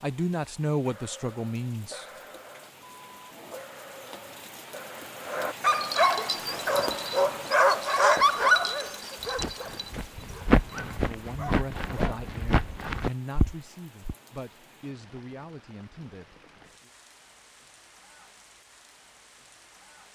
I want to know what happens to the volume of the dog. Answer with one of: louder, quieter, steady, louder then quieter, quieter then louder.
louder then quieter.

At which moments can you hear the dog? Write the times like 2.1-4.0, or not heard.
0.8-12.2.